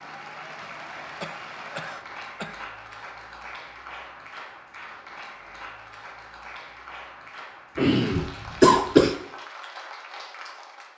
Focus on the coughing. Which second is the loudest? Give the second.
9 s.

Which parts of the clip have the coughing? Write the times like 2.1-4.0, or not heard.
0.6-2.6, 7.8-9.2.